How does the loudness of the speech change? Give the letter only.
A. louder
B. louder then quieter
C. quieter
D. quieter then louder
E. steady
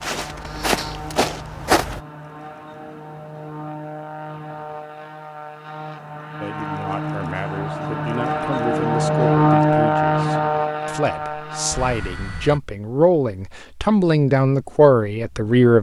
A.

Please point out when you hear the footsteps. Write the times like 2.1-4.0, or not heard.
0.0-2.0.